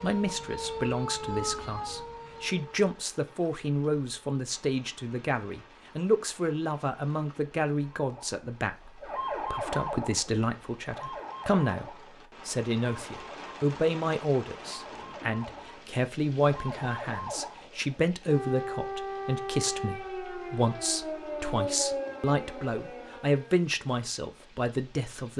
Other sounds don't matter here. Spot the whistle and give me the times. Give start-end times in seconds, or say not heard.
not heard.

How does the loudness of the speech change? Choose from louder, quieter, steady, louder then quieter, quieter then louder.
steady.